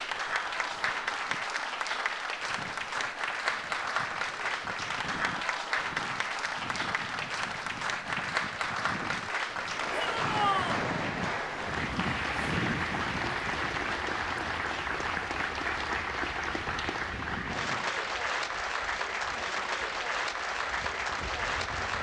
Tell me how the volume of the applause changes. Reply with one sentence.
The loudness of the applause stays about the same.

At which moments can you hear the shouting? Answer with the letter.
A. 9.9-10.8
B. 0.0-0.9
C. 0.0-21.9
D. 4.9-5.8
A.